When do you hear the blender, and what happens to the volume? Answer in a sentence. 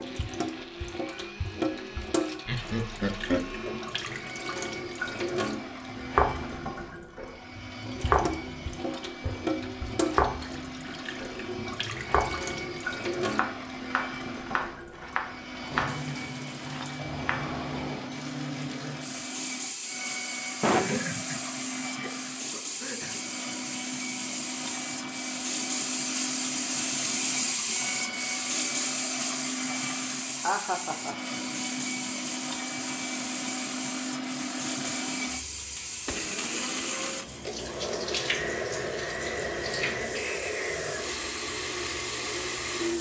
You can hear the blender from 0.0 to 42.9 s, getting louder.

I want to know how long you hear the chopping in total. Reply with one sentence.
The chopping can be heard for 12 seconds in total.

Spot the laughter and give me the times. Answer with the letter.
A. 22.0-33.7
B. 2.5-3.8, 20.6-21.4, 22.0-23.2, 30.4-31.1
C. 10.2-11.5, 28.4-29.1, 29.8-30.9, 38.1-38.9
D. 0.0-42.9
B.